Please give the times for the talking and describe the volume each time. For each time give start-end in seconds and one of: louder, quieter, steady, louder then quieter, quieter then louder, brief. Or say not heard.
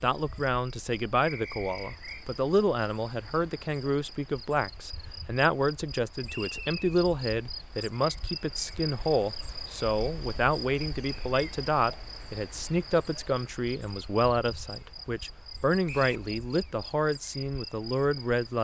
0.0-18.6 steady.